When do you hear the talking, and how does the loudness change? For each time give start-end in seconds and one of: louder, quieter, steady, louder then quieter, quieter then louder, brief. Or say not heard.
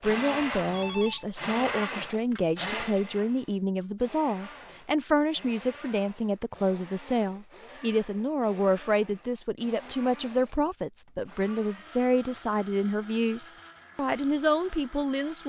0.0-15.4 steady.